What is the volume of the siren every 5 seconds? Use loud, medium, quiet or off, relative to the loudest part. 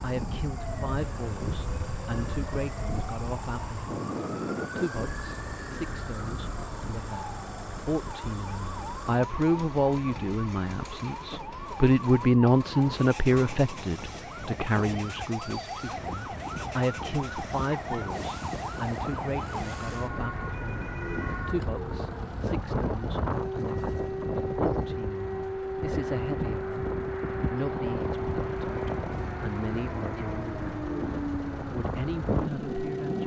medium, medium, medium, loud, loud, loud, loud.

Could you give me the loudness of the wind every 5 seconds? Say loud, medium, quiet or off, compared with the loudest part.
loud, medium, medium, medium, loud, loud, loud.